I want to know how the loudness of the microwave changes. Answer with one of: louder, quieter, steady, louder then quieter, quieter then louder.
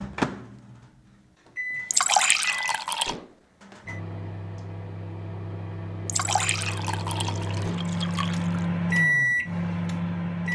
louder.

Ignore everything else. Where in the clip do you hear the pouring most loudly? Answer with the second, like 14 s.
2 s.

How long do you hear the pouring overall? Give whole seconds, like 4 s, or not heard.
4 s.